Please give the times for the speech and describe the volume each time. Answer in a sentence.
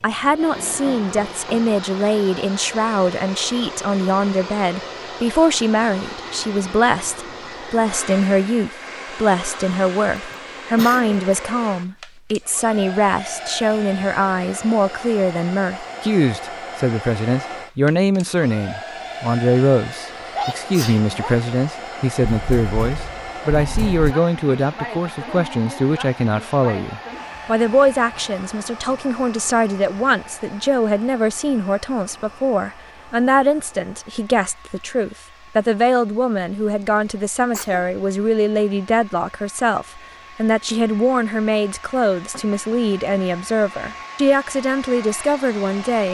The speech can be heard from 0.0 to 46.1 s, at a steady volume.